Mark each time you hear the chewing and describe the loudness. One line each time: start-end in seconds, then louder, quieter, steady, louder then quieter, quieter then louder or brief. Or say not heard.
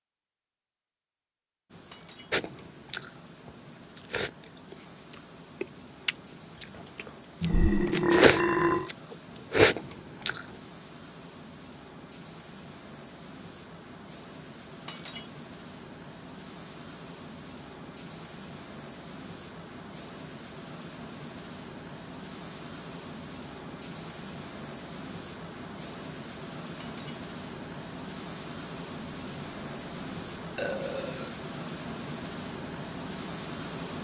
2.3-10.4 louder.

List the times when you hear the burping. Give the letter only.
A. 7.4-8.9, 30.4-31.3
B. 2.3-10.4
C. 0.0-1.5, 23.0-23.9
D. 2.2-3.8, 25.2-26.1
A.